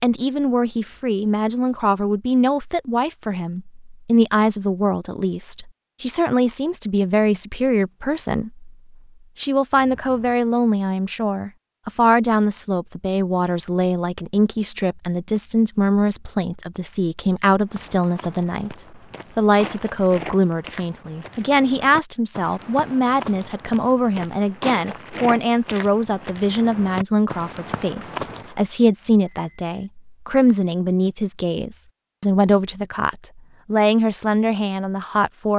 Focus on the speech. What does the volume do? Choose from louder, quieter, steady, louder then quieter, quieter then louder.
steady.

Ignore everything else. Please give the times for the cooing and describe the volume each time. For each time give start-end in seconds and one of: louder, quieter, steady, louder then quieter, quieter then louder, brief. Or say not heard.
not heard.